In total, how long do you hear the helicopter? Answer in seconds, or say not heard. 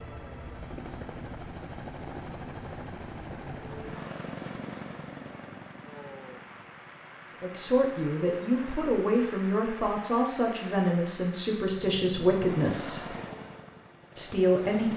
12 s.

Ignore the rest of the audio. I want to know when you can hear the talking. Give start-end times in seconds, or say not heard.
7.4-13.1, 14.2-14.9.